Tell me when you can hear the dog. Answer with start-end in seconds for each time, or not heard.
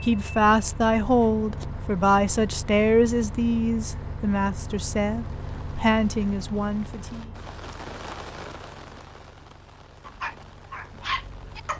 10.1-11.7.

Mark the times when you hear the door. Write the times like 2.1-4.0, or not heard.
not heard.